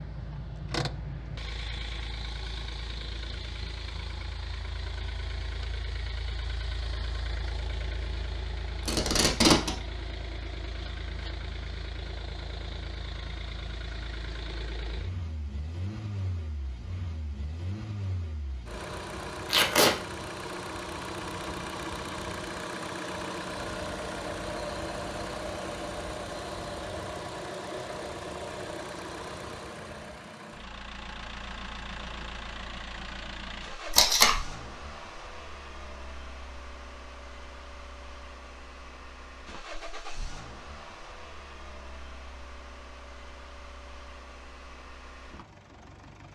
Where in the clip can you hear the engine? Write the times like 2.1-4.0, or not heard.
0.0-46.3.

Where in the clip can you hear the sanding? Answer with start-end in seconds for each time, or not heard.
not heard.